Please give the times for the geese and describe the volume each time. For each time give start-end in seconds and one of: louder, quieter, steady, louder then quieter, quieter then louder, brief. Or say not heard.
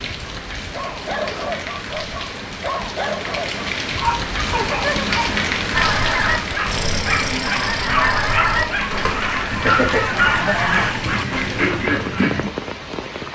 5.7-12.5 steady.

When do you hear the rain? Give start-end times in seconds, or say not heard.
0.0-13.3.